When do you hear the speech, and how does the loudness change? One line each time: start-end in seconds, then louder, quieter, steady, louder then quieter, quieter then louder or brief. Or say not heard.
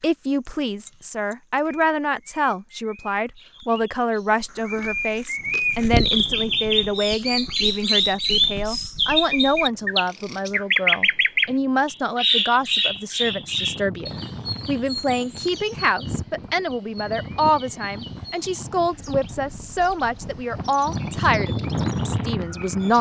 0.0-22.9 steady.